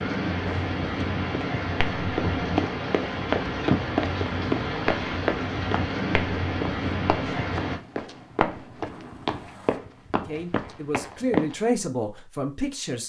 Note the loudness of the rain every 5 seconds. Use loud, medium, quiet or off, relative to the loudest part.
loud, loud, off.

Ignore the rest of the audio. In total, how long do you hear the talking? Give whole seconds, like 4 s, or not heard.
3 s.